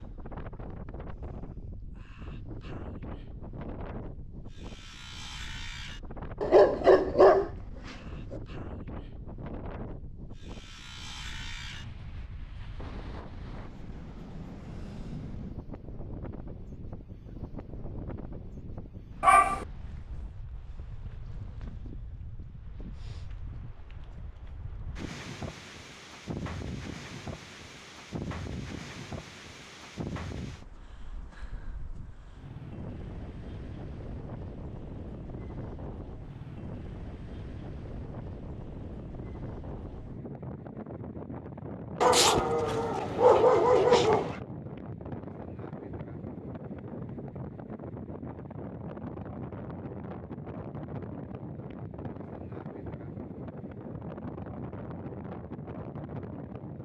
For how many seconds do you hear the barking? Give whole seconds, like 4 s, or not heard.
4 s.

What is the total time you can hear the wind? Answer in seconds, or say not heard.
57 s.